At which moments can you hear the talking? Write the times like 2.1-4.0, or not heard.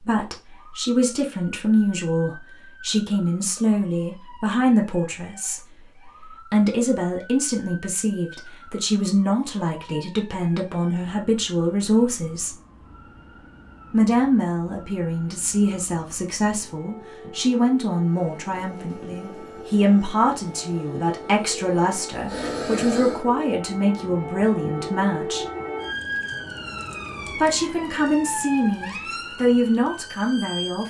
0.1-5.6, 6.2-12.6, 13.9-25.4, 27.4-30.8.